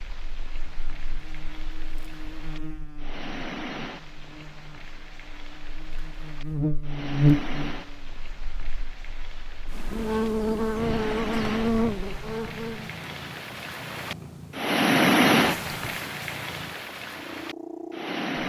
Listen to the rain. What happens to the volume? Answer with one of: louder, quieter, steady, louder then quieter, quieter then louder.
louder.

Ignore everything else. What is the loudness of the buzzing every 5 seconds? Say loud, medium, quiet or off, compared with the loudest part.
quiet, loud, loud, off.